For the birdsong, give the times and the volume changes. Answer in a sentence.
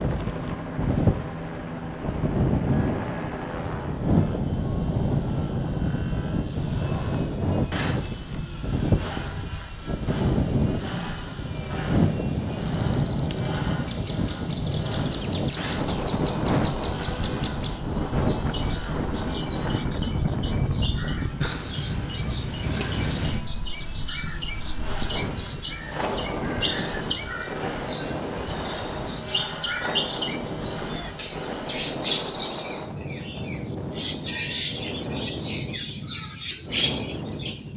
The birdsong can be heard from 12.6 to 37.7 s, getting louder.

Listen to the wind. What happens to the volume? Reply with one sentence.
The volume of the wind goes down.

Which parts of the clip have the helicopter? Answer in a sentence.
The helicopter can be heard from 0.0 to 32.5 s.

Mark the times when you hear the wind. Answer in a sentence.
You can hear the wind from 0.0 to 37.7 s.